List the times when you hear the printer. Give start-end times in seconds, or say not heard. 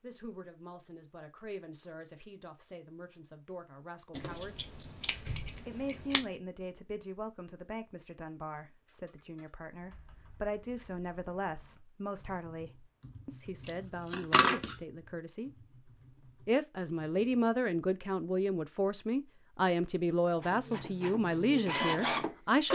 20.3-22.6.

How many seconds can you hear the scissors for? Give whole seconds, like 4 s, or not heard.
3 s.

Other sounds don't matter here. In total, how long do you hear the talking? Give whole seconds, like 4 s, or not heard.
21 s.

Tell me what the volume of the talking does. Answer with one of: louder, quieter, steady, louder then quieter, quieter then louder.
louder.